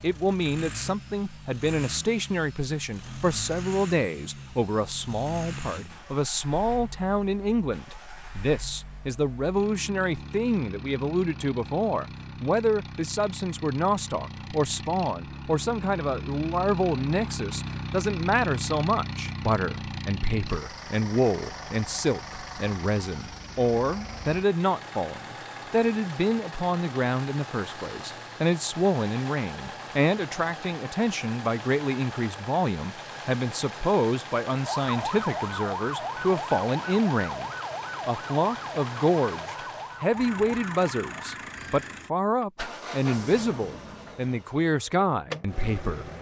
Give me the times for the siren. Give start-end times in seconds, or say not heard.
34.6-41.7.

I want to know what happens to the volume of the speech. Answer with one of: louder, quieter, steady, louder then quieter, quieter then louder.
steady.